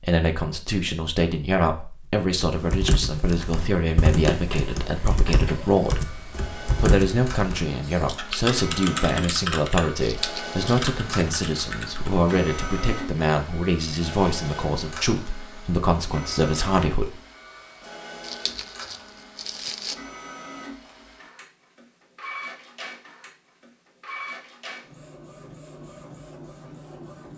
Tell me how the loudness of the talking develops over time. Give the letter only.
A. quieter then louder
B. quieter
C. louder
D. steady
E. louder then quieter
D.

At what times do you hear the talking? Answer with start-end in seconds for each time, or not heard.
0.0-6.1, 6.8-17.1.